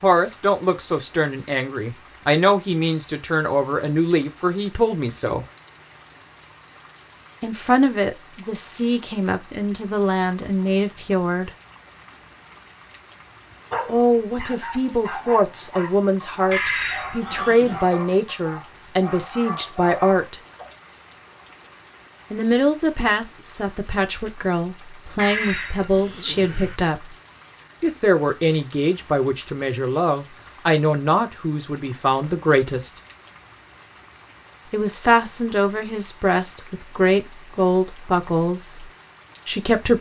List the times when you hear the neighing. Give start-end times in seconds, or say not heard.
16.5-17.9, 25.1-26.8.